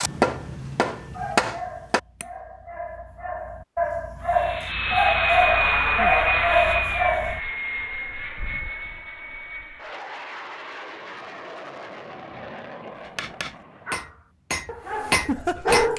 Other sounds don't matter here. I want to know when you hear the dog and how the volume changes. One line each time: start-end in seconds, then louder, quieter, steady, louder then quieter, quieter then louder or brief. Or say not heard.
1.0-7.4 louder
13.8-15.9 brief.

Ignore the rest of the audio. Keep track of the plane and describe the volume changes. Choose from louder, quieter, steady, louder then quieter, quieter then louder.
quieter.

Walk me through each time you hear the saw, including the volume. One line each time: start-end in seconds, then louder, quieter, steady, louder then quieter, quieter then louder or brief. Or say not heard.
not heard.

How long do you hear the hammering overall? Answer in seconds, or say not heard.
5 s.